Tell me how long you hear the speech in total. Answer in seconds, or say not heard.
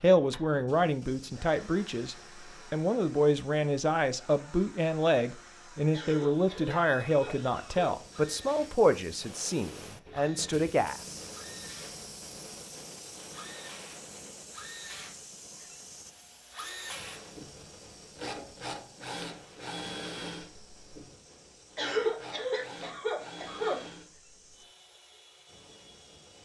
11 s.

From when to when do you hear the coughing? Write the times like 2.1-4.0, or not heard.
5.9-8.0, 21.8-23.8.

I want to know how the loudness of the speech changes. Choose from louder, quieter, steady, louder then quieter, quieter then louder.
steady.